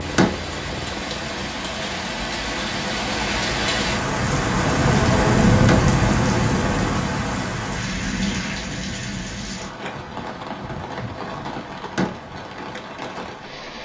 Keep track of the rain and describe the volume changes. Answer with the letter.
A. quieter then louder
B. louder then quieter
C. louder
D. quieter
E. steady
B.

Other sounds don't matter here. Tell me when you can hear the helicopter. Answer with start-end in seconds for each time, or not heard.
0.0-7.0.